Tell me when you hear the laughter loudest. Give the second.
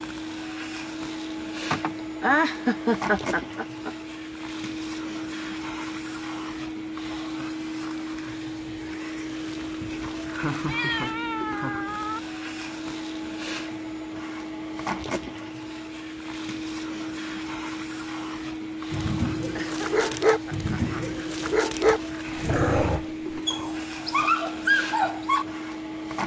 2 s.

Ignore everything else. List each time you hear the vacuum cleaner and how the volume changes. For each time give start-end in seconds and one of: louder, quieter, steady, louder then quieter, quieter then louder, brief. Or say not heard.
0.0-26.2 steady.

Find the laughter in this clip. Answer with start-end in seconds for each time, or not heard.
1.7-3.9, 9.8-11.8, 19.6-21.2.